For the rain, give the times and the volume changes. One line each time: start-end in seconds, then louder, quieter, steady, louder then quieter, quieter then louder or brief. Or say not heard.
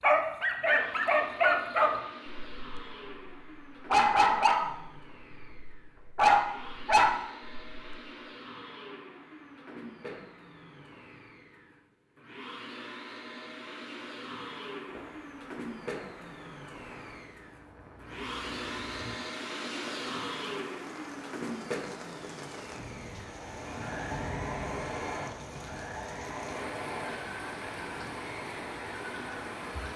14.8-29.9 louder.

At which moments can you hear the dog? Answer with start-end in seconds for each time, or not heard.
0.0-8.1.